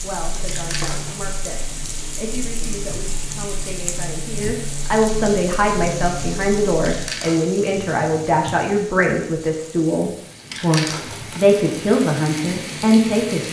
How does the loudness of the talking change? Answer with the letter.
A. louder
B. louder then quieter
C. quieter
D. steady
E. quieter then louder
A.